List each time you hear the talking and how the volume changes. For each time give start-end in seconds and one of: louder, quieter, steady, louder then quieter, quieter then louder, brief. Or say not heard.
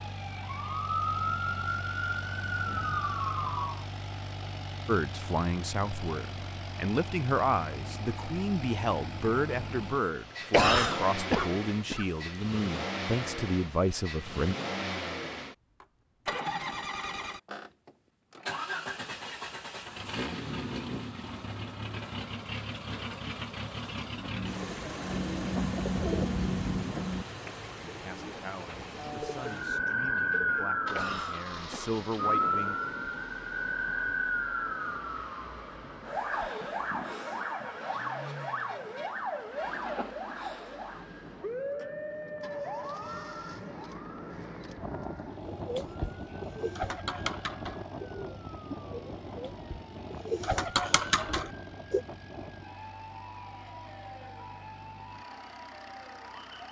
4.8-14.6 steady
27.9-32.8 louder.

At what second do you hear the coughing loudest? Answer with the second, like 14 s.
11 s.